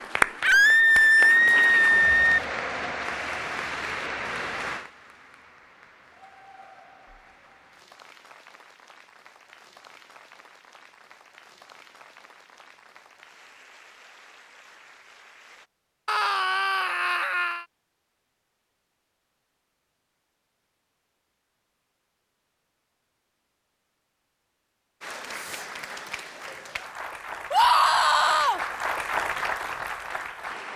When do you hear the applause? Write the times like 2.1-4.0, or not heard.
0.0-15.7, 25.0-30.7.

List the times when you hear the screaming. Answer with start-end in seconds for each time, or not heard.
0.4-2.4, 16.1-17.6, 27.5-28.6.